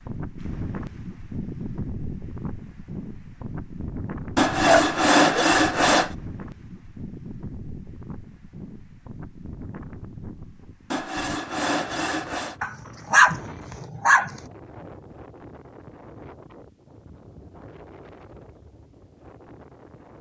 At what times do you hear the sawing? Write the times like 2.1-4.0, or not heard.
4.3-6.1, 10.9-12.6.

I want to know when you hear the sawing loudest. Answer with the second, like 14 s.
5 s.